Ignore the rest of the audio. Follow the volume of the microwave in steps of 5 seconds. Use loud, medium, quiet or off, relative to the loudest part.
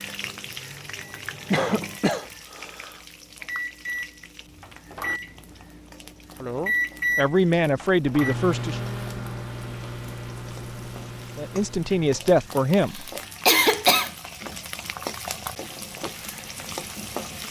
medium, loud, medium, off.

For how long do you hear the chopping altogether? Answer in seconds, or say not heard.
not heard.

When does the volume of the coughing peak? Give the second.
14 s.